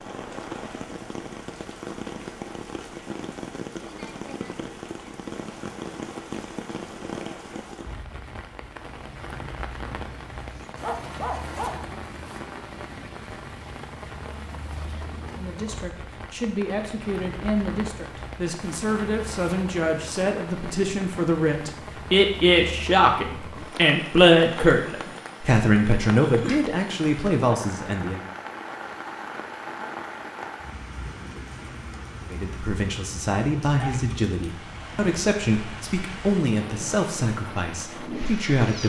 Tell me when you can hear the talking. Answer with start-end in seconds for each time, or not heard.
15.3-28.2, 32.3-38.8.